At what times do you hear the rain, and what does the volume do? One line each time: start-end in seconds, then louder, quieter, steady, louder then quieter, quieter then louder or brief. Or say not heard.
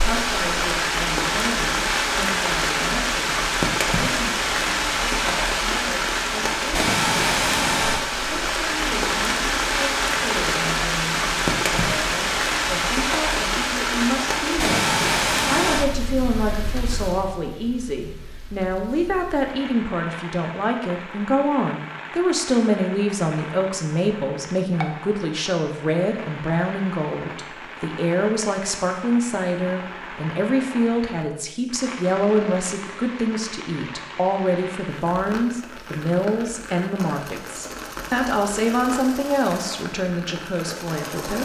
0.0-41.3 quieter.